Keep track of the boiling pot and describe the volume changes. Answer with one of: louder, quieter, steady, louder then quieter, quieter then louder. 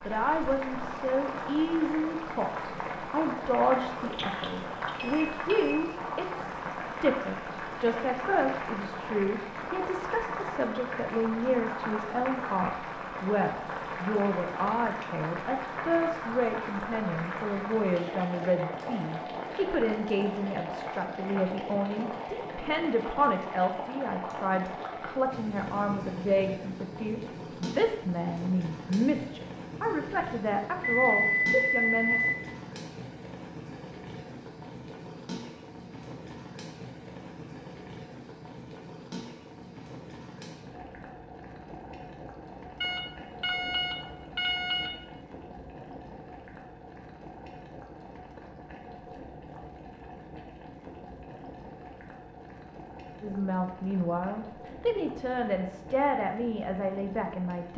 quieter.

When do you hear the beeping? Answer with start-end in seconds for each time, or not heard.
4.1-5.8, 30.8-32.4, 42.8-44.9.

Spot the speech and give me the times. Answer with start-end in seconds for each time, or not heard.
0.1-32.2, 53.2-57.7.